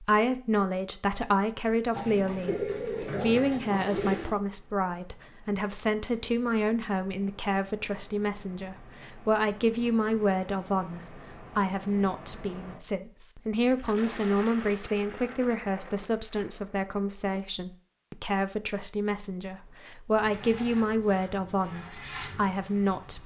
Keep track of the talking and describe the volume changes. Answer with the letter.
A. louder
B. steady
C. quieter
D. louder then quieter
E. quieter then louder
B.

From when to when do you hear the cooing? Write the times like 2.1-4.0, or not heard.
1.9-4.3.